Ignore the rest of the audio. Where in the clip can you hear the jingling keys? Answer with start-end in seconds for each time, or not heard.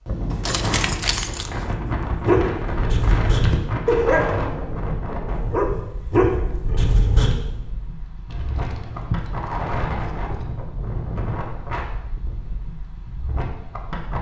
0.3-1.6, 8.2-10.6.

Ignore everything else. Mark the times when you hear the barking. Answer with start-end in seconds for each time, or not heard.
1.9-7.3.